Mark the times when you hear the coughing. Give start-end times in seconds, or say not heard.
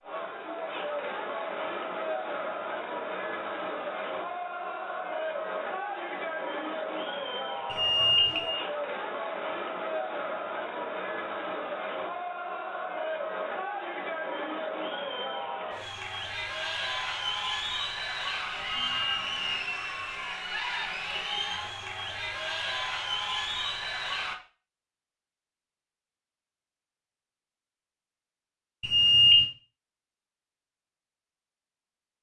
not heard.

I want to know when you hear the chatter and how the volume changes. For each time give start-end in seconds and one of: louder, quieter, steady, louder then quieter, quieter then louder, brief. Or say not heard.
0.0-24.4 steady.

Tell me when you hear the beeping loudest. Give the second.
29 s.